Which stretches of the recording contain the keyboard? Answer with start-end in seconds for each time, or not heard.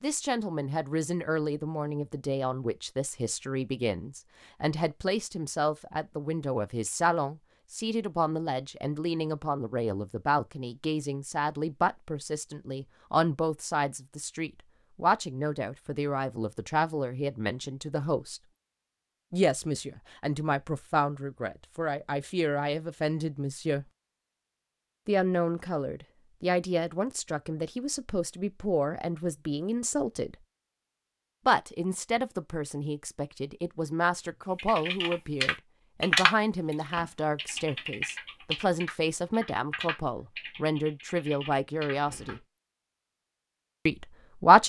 34.5-42.4.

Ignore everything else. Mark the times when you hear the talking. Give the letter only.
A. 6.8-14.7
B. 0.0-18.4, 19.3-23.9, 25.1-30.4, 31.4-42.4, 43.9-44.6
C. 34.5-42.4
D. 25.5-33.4
B.